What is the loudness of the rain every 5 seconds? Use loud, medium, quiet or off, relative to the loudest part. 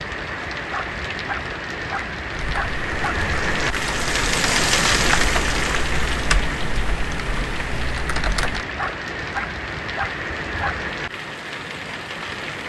loud, loud, medium.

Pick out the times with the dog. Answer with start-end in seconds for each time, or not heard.
0.7-3.1, 8.8-10.8.